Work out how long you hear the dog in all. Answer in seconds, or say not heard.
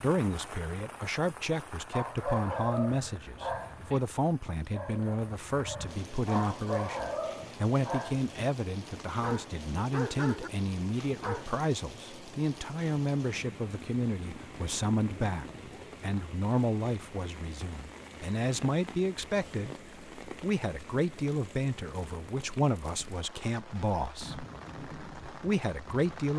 10 s.